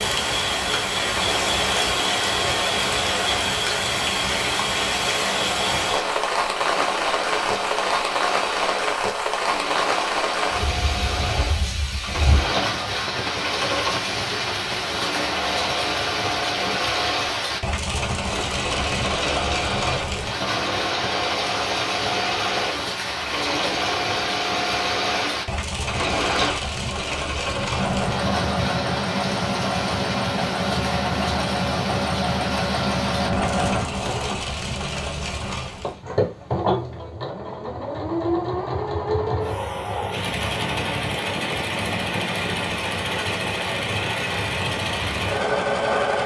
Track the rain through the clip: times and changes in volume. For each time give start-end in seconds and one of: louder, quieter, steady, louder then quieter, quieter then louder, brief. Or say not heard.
0.0-36.0 quieter.